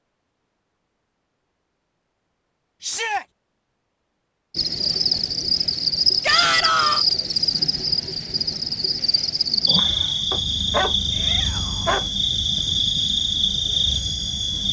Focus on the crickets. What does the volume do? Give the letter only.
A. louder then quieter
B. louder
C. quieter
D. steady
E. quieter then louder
D.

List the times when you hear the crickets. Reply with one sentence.
The crickets can be heard from 4.5 to 14.6 s.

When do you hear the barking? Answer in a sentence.
The barking can be heard from 10.3 to 12.1 s.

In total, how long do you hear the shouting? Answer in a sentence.
The shouting can be heard for 2 seconds in total.